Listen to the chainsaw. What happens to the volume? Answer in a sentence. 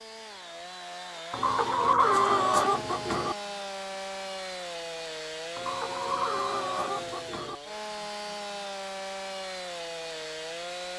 The volume of the chainsaw stays about the same.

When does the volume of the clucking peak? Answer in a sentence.
The volume of the clucking peaks at 2 seconds.